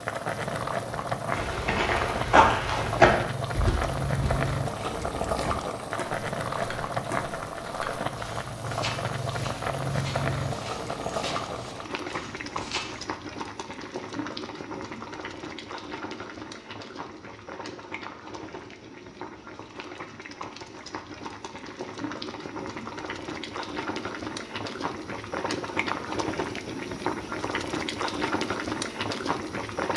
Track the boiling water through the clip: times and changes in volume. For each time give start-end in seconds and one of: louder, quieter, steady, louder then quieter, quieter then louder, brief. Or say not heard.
0.0-29.9 quieter then louder.